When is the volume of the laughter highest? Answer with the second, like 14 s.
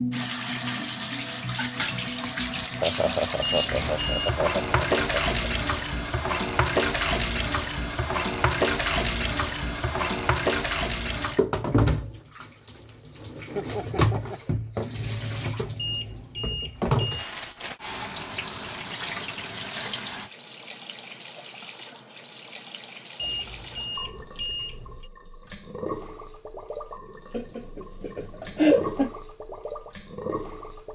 29 s.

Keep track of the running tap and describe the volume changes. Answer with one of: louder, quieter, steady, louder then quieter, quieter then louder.
quieter.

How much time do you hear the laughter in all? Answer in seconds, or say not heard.
6 s.